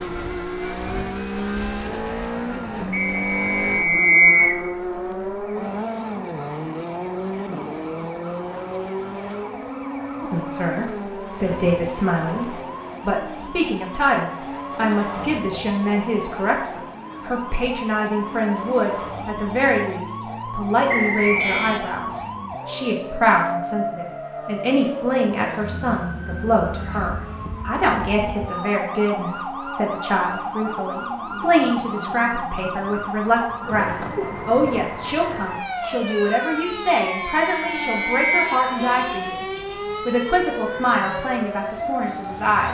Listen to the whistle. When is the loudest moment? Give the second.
4 s.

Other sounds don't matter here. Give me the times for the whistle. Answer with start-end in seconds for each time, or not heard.
2.9-4.6, 20.9-21.8, 37.2-38.6.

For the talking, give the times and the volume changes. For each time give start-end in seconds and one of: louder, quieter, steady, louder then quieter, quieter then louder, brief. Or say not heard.
10.2-39.5 steady
40.0-42.6 brief.